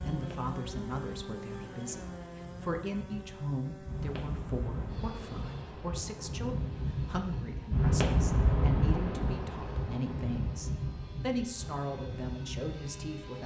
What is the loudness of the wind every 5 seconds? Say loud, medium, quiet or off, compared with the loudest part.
medium, loud, medium.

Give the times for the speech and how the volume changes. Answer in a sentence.
You can hear the speech from 0.0 to 13.4 s, at a steady volume.